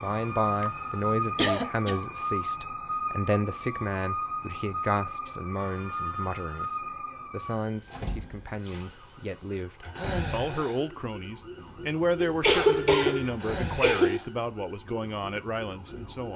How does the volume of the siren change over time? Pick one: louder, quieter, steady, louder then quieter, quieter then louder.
quieter.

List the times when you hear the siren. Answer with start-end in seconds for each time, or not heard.
0.0-16.3.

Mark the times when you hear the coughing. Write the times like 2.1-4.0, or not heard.
0.5-2.0, 12.2-14.2.